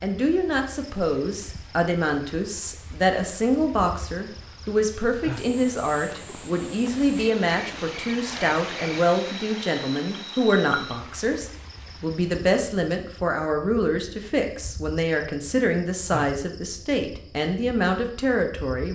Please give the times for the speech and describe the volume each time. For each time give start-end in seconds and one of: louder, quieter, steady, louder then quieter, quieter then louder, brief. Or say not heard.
0.0-18.8 steady.